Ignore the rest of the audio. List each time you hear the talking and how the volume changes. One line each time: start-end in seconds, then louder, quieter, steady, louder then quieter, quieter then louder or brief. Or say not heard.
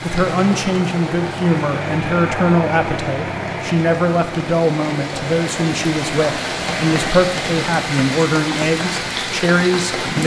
0.0-10.2 steady.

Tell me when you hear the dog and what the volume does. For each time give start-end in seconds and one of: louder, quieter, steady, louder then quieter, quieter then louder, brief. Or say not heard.
not heard.